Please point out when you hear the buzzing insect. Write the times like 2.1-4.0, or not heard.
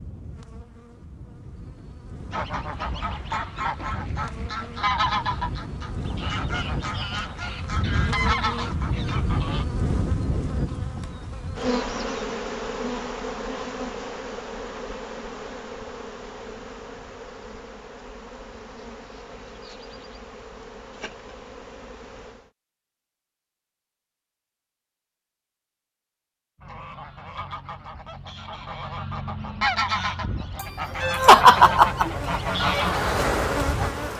0.0-22.5, 31.4-34.1.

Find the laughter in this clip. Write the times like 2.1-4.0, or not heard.
30.6-32.1.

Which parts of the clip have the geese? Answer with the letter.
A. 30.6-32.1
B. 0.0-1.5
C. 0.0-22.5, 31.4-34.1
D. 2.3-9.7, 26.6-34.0
D.